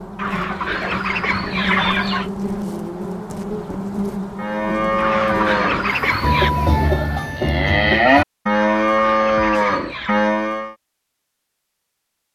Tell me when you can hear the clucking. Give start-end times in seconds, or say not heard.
0.1-2.3, 5.0-6.5, 8.7-10.2.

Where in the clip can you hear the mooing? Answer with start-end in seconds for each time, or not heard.
4.3-10.8.